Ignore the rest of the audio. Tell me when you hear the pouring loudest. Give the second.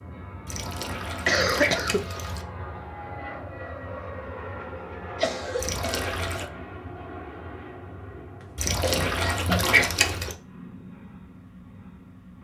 10 s.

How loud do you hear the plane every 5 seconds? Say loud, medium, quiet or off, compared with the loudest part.
loud, loud, medium.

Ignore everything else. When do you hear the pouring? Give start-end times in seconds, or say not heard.
0.5-2.5, 5.5-6.5, 8.6-10.3.